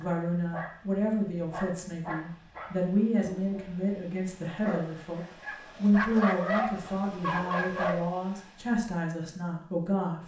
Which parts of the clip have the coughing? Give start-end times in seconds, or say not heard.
not heard.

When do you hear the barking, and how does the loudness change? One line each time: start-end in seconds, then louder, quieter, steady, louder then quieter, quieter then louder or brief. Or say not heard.
0.0-8.1 louder.